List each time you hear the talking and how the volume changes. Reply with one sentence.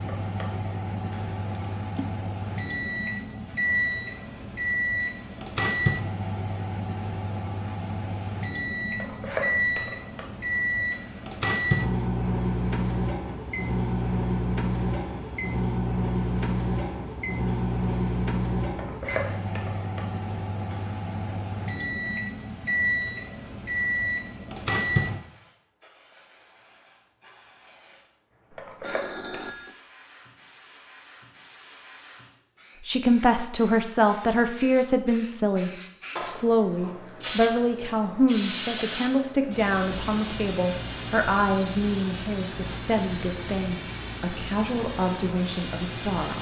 The talking can be heard from 32.9 to 46.3 s, getting quieter.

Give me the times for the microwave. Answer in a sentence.
You can hear the microwave from 0.0 to 25.2 s.